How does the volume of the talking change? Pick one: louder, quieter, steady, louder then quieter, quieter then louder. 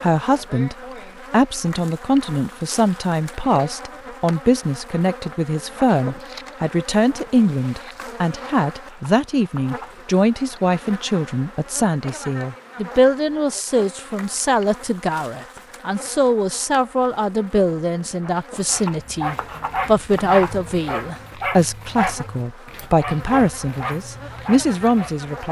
steady.